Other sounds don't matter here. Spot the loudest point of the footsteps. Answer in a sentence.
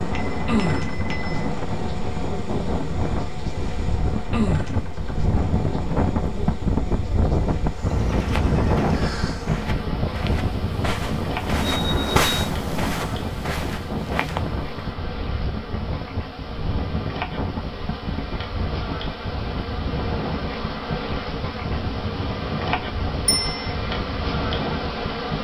The loudest moment of the footsteps is at 12 seconds.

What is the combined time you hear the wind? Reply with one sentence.
You can hear the wind for 25 seconds altogether.